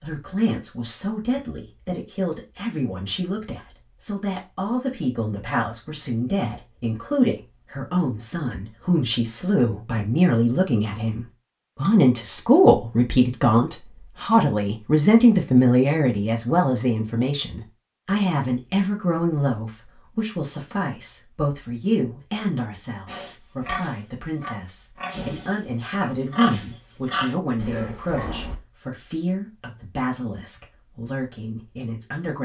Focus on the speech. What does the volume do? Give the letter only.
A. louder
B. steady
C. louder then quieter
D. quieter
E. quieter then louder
C.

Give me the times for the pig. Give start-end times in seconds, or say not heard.
23.1-28.6.